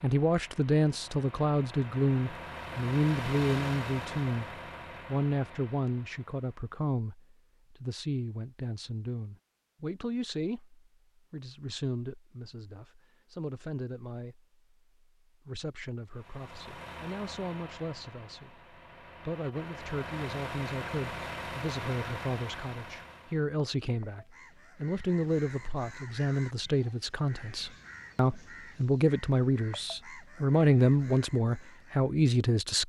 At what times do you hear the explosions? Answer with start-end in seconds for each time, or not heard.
not heard.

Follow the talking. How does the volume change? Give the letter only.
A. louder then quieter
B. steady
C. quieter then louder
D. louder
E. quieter
C.